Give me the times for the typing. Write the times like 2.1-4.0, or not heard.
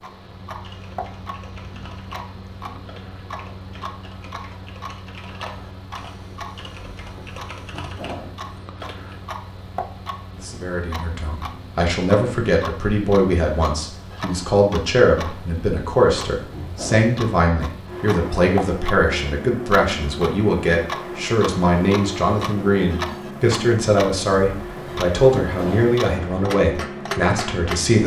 0.6-9.2.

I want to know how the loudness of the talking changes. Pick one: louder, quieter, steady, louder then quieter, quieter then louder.
steady.